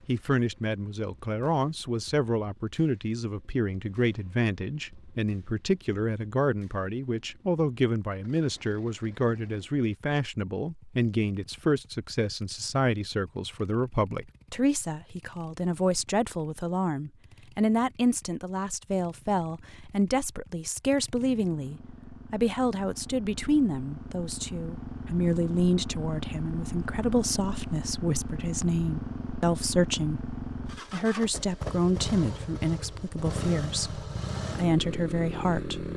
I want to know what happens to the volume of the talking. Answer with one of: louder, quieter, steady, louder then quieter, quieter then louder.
steady.